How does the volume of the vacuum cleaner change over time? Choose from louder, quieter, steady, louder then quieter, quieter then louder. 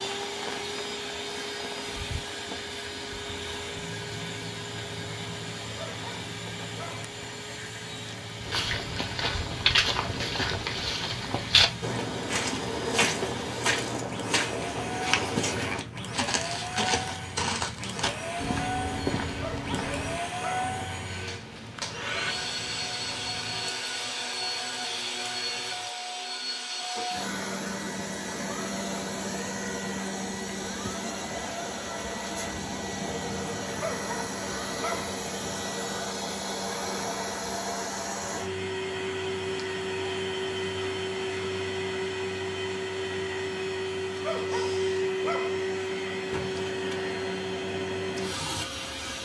louder.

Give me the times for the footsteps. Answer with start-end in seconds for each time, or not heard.
8.4-20.2.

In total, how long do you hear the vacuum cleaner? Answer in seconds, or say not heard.
49 s.